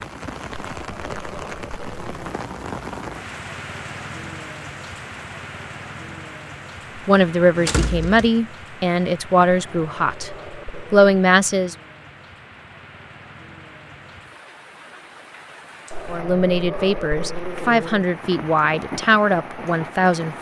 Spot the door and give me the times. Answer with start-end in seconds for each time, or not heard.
7.5-8.3.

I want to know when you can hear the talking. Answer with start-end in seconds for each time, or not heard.
7.0-10.3, 10.9-11.8, 16.1-20.3.